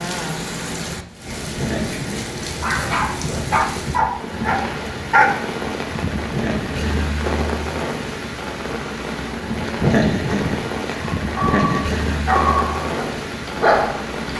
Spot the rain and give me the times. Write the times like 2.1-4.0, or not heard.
0.0-14.3.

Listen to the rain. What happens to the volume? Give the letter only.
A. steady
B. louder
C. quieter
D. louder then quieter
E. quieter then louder
A.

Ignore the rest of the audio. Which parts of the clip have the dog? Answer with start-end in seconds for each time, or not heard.
2.5-5.5, 11.2-14.1.